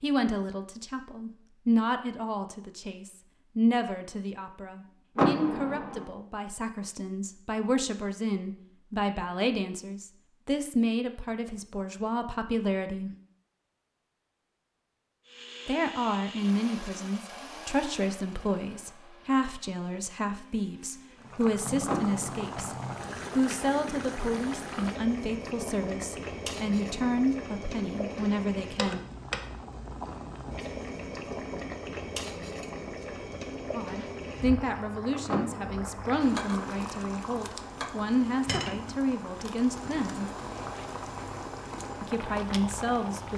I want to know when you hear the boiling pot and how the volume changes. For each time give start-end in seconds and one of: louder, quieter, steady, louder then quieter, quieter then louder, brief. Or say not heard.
21.2-43.3 steady.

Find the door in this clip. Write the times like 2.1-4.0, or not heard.
5.2-6.0, 21.9-22.5, 35.2-36.1.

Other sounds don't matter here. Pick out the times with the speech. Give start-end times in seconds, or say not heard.
0.0-13.1, 15.7-22.8, 23.4-29.0, 33.8-40.2, 42.0-43.3.